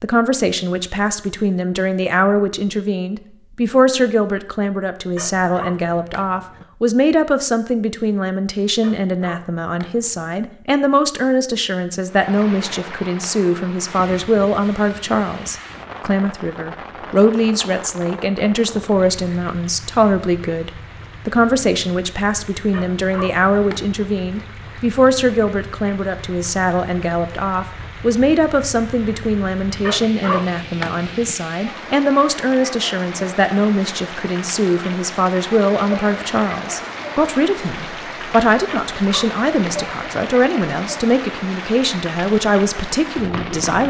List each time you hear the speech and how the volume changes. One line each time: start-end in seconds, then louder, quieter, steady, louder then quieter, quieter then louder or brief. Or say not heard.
0.0-43.8 steady.